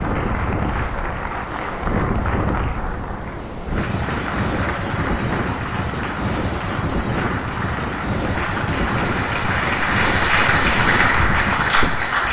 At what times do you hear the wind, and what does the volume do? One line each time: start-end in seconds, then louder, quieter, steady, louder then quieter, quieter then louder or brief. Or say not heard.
0.0-12.2 steady.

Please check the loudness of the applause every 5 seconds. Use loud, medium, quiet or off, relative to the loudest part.
medium, medium, loud.